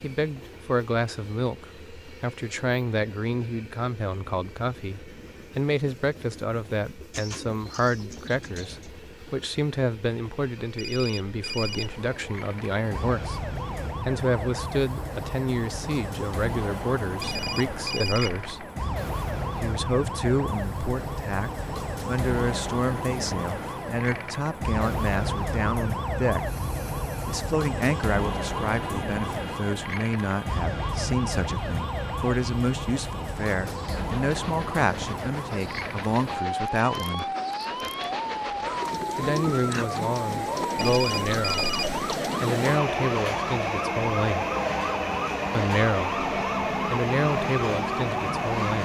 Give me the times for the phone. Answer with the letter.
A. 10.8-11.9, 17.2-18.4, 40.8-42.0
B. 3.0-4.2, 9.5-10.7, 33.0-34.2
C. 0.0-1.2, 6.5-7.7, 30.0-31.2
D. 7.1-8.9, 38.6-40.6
A.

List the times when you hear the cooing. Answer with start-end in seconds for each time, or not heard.
7.1-8.9, 38.6-40.6.